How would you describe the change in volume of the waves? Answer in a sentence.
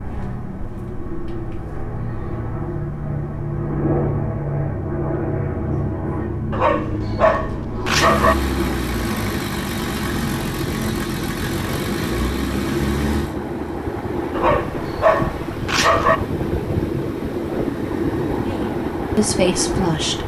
The loudness of the waves goes up.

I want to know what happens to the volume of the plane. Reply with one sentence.
The loudness of the plane goes down.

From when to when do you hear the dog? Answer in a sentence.
You can hear the dog from 6.5 to 8.3 s and from 14.3 to 16.2 s.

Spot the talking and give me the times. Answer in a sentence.
You can hear the talking from 18.4 to 20.2 s.